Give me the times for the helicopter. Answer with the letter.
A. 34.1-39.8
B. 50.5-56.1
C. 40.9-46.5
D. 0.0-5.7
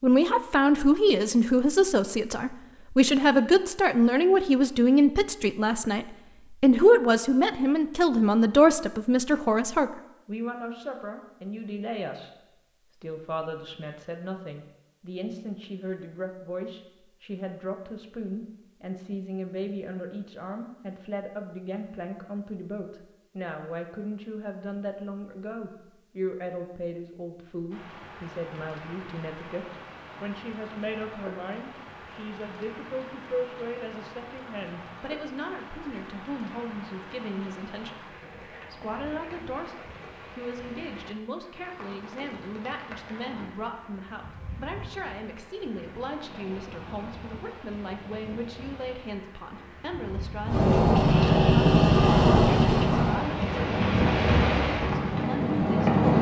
B.